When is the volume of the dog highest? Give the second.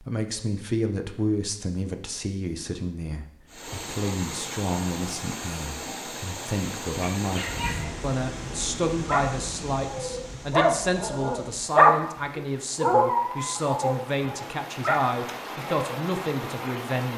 12 s.